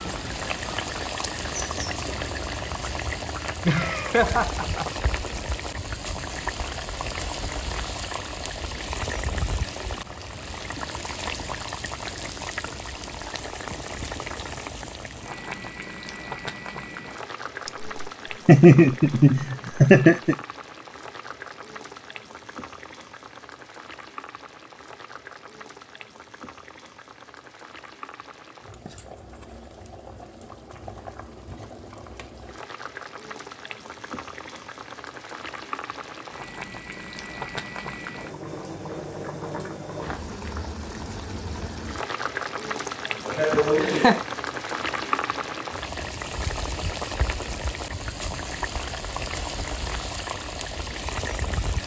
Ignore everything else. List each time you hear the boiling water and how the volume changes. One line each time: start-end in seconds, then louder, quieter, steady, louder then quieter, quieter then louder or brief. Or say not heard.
0.0-51.8 quieter then louder.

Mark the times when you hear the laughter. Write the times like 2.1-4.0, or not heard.
3.6-5.0, 17.6-20.4, 42.9-44.2.